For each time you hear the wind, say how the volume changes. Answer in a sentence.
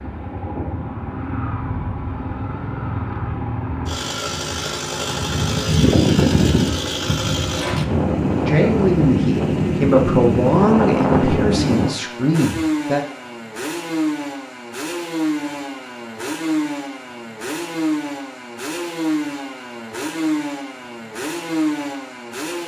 The wind can be heard from 0.0 to 11.9 s, getting louder.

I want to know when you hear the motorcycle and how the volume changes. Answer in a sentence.
The motorcycle can be heard from 0.0 to 22.6 s, at a steady volume.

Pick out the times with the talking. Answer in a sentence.
The talking can be heard from 8.4 to 13.0 s.